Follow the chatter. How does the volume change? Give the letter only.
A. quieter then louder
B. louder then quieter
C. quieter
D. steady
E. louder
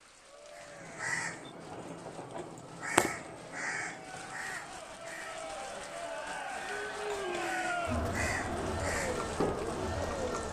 E.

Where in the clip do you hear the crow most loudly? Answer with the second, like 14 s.
3 s.